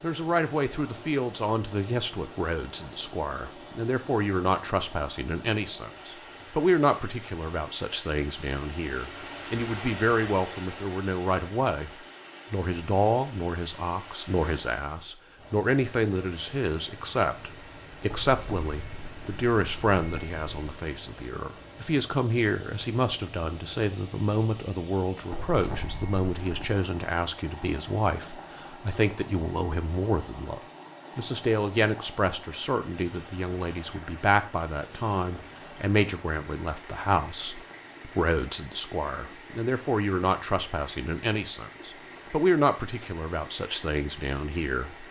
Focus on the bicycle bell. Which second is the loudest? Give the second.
26 s.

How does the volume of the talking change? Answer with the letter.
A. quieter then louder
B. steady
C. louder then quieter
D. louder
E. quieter
B.